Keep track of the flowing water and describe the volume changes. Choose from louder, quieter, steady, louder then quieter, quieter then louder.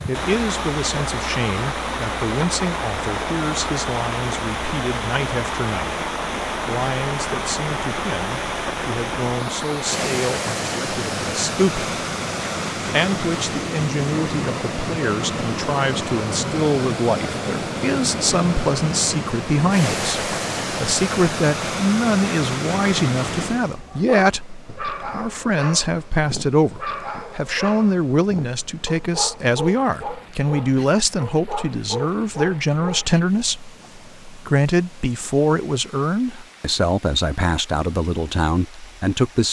quieter.